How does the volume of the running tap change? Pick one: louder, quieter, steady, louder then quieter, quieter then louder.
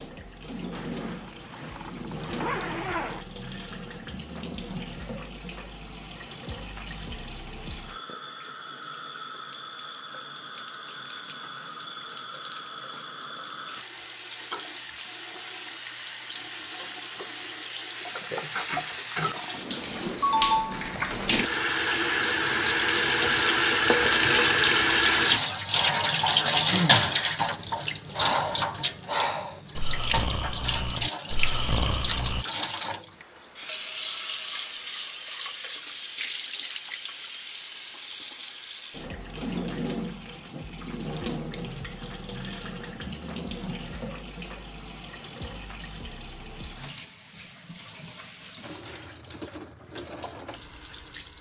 louder then quieter.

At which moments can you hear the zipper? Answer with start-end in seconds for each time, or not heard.
0.7-3.2.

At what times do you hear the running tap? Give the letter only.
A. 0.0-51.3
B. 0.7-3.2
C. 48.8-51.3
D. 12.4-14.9
A.